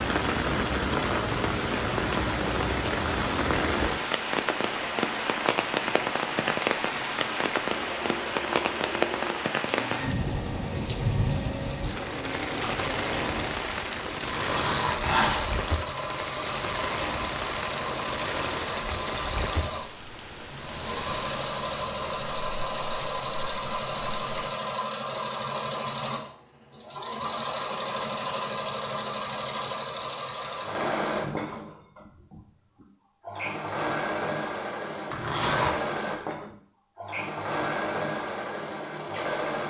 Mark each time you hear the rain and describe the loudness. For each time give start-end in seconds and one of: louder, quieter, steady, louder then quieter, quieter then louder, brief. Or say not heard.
0.0-24.5 quieter.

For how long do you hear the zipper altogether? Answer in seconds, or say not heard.
2 s.